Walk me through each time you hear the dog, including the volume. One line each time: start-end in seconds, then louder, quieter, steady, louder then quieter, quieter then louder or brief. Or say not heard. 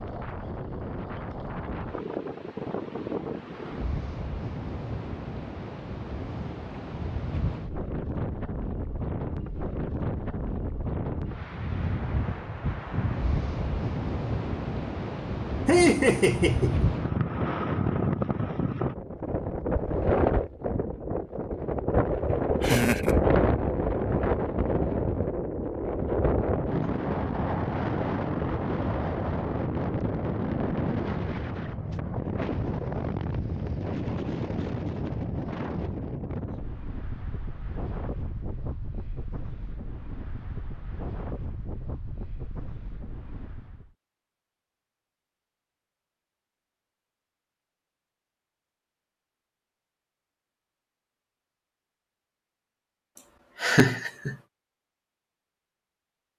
not heard.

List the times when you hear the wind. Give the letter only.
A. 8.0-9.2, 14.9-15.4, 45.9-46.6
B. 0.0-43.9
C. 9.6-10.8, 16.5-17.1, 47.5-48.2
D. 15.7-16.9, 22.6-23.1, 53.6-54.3
B.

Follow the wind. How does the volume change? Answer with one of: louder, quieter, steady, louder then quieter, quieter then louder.
louder then quieter.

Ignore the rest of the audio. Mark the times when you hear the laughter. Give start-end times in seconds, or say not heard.
15.7-16.9, 22.6-23.1, 53.6-54.3.